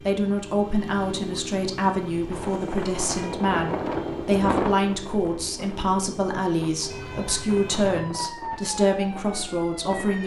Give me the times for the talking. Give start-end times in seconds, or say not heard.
0.1-10.2.